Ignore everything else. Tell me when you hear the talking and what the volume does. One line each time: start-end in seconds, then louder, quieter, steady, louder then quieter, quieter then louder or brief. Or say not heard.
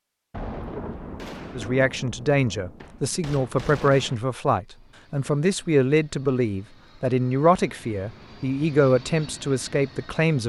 1.6-10.4 steady.